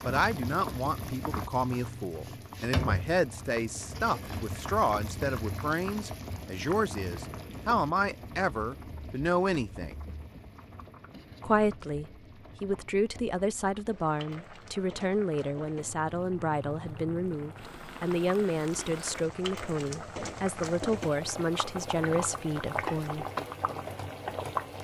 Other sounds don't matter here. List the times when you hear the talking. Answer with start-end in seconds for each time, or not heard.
0.0-9.9, 11.4-23.2.